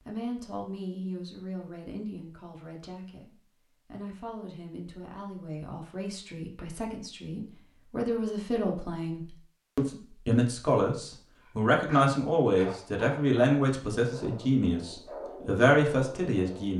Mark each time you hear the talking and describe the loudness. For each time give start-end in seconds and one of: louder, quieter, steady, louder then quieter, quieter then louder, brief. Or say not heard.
0.1-16.7 louder.